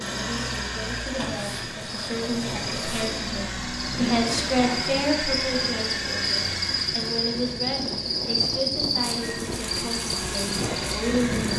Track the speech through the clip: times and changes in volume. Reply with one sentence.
The speech can be heard from 0.0 to 11.5 s, getting louder then quieter.